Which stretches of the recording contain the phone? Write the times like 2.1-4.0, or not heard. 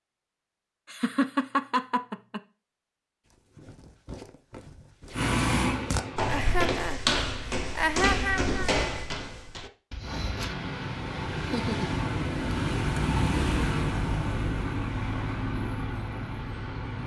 not heard.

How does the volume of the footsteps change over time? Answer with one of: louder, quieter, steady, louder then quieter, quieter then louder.
louder then quieter.